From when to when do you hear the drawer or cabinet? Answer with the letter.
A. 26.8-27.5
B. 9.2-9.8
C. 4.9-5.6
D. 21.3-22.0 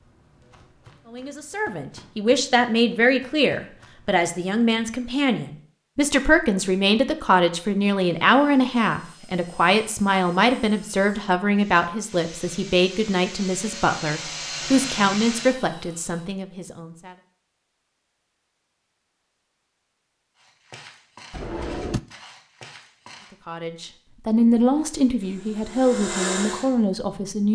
D.